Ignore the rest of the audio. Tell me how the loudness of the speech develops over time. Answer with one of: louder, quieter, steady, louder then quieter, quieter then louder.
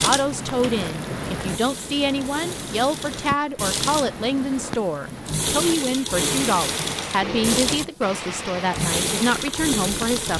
steady.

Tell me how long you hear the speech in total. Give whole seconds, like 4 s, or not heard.
10 s.